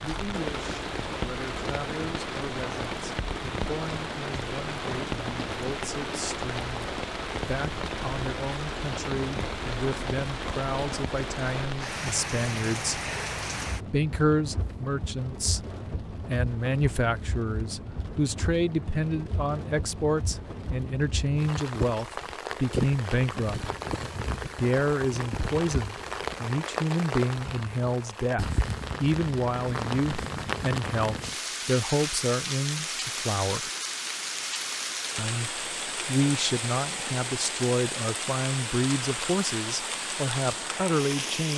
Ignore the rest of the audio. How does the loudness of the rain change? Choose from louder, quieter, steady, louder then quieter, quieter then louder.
steady.